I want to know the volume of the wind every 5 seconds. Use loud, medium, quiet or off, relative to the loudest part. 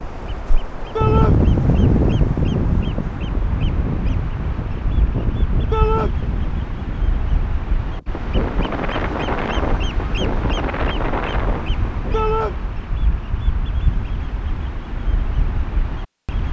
loud, medium, medium, off.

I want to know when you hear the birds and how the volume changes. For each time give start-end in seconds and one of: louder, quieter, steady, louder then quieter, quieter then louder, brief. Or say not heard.
0.0-16.4 louder.